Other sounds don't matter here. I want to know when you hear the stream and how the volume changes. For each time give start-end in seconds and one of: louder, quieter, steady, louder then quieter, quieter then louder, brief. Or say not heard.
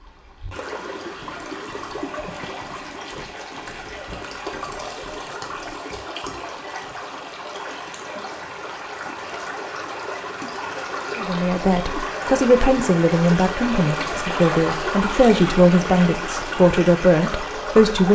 0.0-18.1 louder.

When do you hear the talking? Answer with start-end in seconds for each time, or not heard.
11.2-18.1.